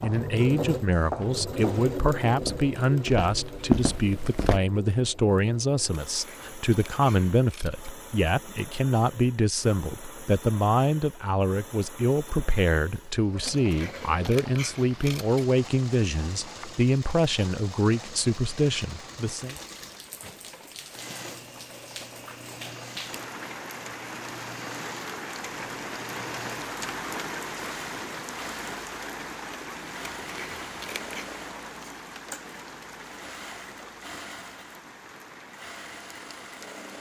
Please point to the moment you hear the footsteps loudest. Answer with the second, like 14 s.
4 s.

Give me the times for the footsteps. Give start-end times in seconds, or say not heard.
0.0-4.6.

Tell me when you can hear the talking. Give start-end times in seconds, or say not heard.
0.0-19.6.